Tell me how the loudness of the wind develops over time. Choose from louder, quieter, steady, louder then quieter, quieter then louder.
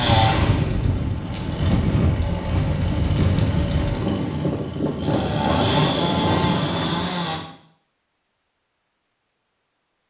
steady.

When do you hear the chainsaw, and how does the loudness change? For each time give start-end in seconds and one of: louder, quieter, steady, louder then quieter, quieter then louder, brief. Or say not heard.
0.0-7.4 louder.